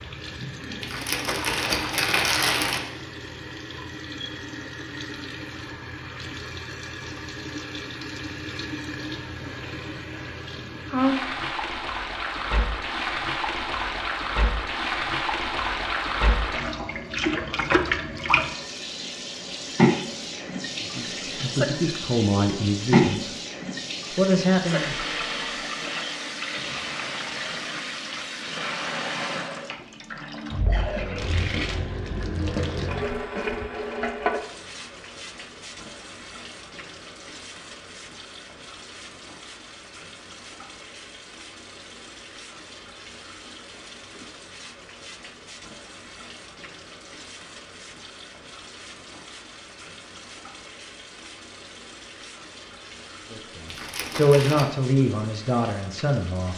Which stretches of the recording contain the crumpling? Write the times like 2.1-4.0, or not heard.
0.8-2.8, 53.6-54.7.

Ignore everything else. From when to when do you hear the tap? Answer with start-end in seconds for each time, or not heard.
0.0-56.5.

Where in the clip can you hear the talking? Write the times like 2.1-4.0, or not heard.
20.8-23.3, 24.1-24.9, 53.3-56.5.